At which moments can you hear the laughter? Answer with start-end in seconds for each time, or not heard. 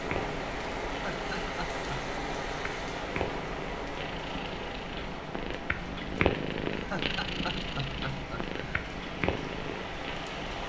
0.8-2.1, 6.7-8.8.